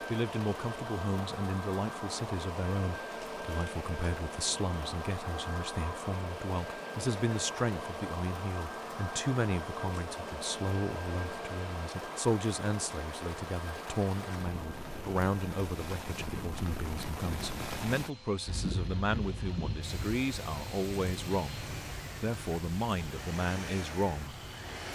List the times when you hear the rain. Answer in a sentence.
You can hear the rain from 0.0 to 24.9 s.